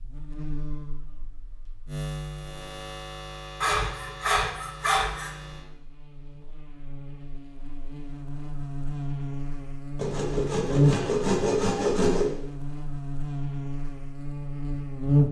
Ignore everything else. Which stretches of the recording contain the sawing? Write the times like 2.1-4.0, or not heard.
3.6-5.3, 9.9-12.3.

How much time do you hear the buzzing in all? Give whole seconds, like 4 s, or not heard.
15 s.